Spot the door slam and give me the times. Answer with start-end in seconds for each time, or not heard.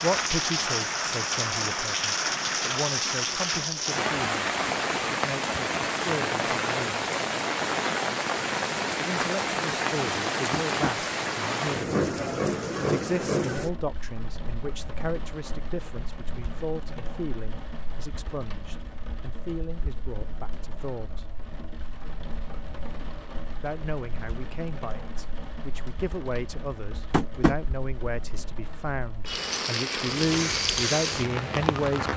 not heard.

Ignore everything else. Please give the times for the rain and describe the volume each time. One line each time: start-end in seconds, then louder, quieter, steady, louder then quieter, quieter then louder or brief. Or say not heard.
0.0-32.1 quieter then louder.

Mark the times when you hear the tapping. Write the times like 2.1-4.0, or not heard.
10.5-10.9, 27.1-27.6.